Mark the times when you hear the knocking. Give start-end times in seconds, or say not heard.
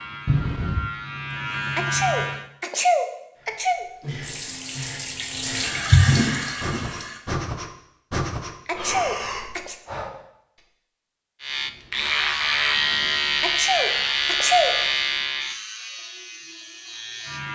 0.2-0.9.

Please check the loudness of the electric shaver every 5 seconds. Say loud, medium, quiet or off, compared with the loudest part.
medium, off, loud, medium.